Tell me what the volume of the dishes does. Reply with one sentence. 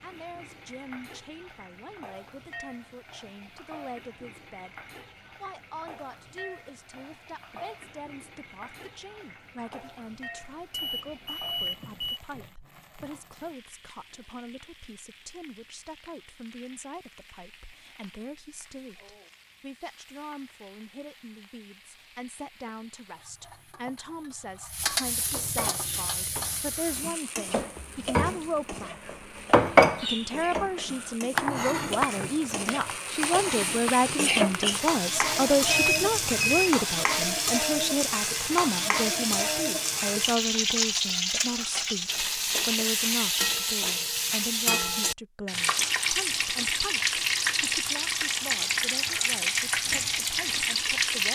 The loudness of the dishes goes up, then down.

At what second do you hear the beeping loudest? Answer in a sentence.
The loudest moment of the beeping is at 36 seconds.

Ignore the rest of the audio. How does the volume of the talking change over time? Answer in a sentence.
The loudness of the talking goes up, then down.